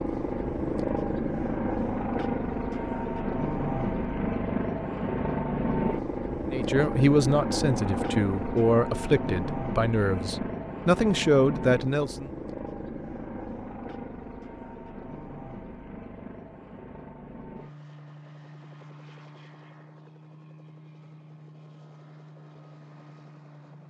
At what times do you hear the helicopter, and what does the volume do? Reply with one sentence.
The helicopter can be heard from 0.0 to 23.8 s, getting quieter.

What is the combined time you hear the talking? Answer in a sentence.
You can hear the talking for 6 seconds altogether.